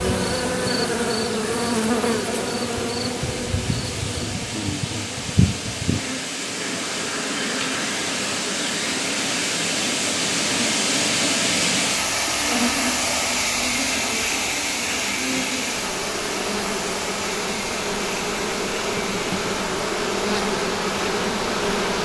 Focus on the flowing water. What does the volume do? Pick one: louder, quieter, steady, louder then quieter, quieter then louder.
louder then quieter.